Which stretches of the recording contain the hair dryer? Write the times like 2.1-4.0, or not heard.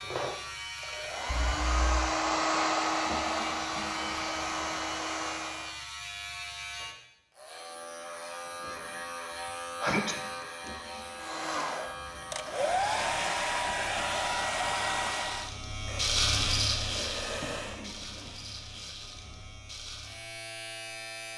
0.0-5.8, 11.2-17.9.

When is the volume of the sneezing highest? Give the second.
10 s.